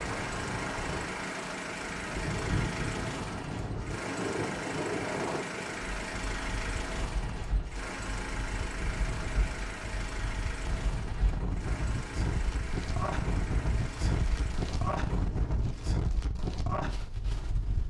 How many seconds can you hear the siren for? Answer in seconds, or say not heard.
not heard.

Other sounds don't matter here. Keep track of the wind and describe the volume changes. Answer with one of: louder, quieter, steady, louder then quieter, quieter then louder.
quieter then louder.